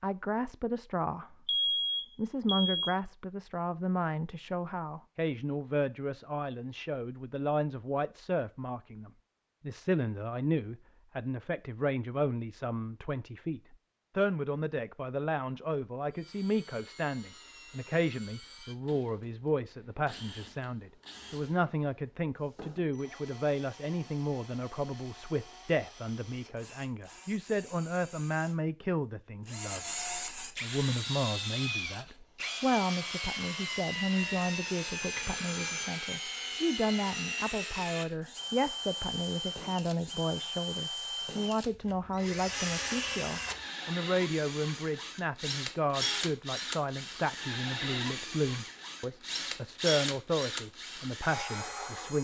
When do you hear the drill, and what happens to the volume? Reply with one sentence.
You can hear the drill from 16.1 to 52.1 s, getting louder.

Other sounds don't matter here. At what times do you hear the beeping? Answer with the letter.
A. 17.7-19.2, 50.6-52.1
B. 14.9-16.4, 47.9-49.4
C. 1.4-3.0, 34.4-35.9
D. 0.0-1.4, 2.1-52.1
C.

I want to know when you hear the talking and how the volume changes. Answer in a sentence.
The talking can be heard briefly from 0.0 to 1.4 s; and from 2.1 to 52.1 s, at a steady volume.